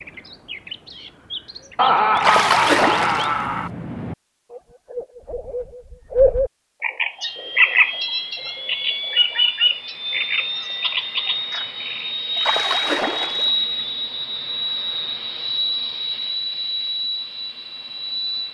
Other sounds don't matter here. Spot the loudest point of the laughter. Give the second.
2 s.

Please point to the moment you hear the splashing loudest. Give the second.
3 s.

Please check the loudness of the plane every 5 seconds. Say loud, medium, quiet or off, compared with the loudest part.
off, medium, loud, loud.